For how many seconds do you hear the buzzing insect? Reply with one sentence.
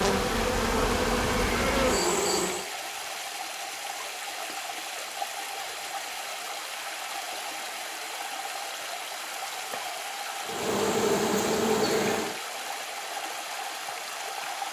You can hear the buzzing insect for 5 seconds altogether.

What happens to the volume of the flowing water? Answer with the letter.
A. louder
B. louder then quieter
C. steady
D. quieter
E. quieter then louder
C.